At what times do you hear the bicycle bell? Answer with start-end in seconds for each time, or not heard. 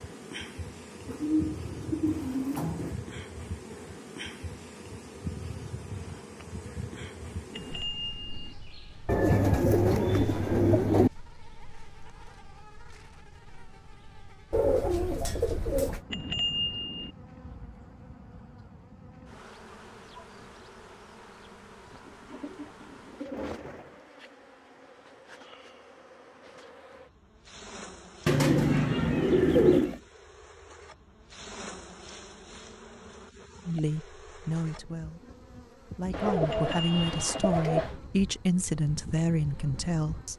7.5-8.6, 16.1-17.1, 36.5-37.5.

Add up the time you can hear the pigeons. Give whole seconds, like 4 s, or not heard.
11 s.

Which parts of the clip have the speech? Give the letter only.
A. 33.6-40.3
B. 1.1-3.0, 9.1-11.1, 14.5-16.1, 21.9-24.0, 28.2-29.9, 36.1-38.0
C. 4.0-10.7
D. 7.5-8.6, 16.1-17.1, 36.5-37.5
A.